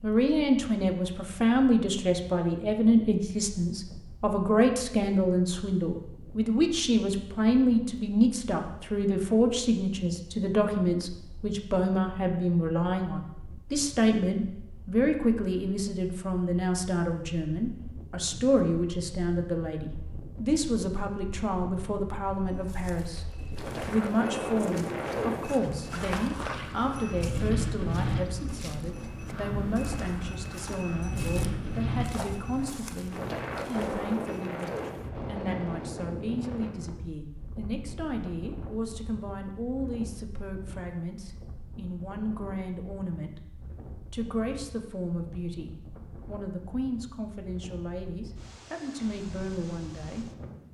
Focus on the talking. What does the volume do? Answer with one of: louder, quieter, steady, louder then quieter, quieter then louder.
quieter.